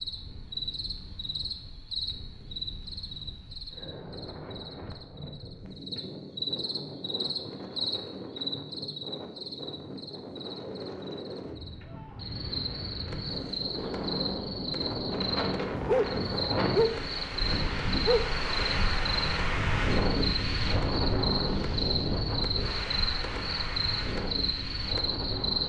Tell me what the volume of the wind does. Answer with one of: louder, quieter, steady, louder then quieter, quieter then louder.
louder.